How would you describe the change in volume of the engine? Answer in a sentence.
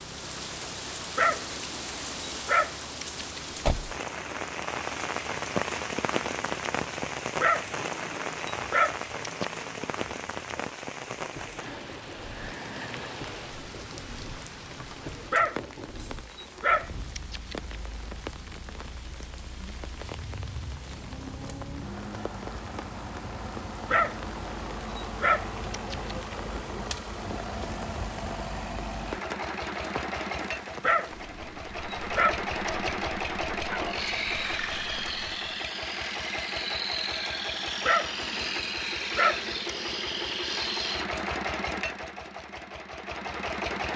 The volume of the engine goes up.